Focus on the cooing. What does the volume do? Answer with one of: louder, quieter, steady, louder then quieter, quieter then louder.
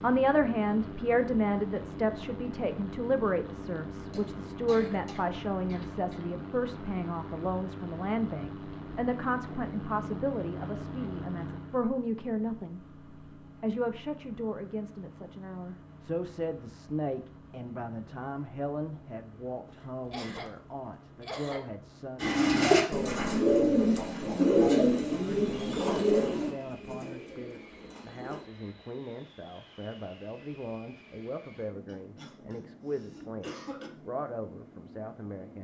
quieter.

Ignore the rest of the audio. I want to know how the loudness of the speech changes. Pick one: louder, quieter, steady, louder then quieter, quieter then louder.
quieter.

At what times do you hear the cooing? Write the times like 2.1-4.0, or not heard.
22.1-28.4.